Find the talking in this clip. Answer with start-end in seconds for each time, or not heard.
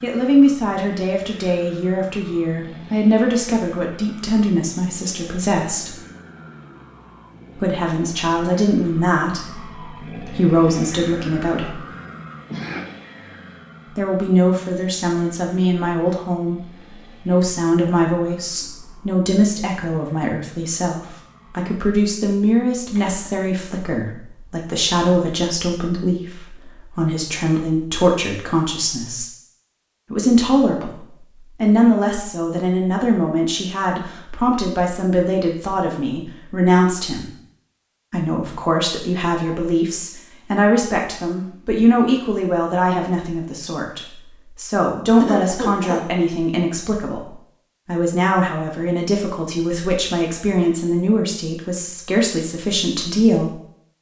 0.0-5.9, 7.5-11.8, 13.8-29.2, 30.1-37.3, 38.1-53.5.